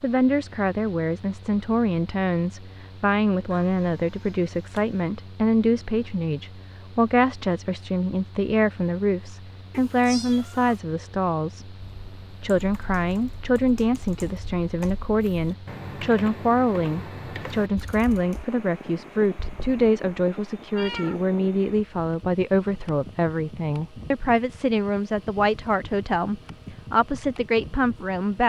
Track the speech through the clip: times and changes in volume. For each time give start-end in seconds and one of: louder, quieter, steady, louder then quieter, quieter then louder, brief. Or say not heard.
0.0-28.4 steady.